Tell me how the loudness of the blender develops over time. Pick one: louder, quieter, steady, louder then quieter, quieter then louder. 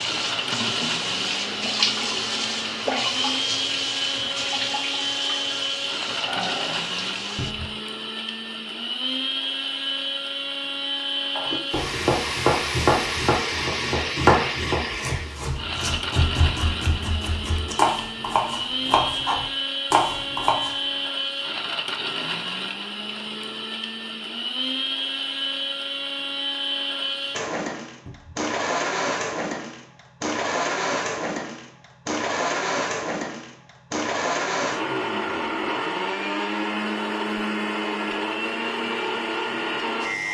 steady.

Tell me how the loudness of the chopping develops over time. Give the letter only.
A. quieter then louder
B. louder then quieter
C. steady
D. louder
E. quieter
A.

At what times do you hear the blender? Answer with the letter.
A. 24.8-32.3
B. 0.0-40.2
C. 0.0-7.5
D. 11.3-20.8
B.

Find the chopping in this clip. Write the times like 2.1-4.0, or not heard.
11.3-20.8.